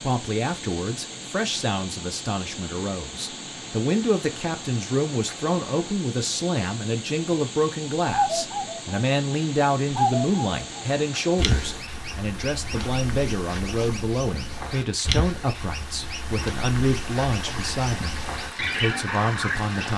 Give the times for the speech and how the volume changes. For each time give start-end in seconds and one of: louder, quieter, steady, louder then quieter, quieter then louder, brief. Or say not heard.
0.0-19.9 steady.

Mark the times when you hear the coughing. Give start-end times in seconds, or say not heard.
not heard.